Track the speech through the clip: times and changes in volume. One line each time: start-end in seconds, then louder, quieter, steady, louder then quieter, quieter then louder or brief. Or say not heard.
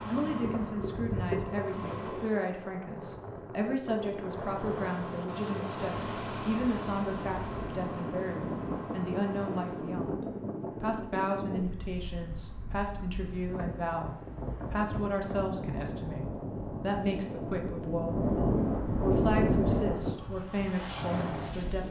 0.1-21.8 steady.